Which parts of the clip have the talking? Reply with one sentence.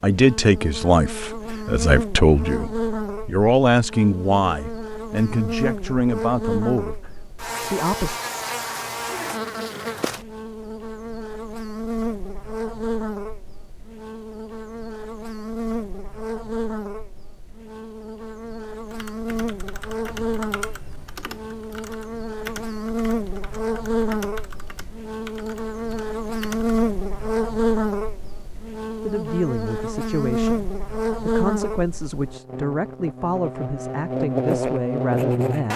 The talking can be heard from 0.0 to 8.2 s and from 29.0 to 35.7 s.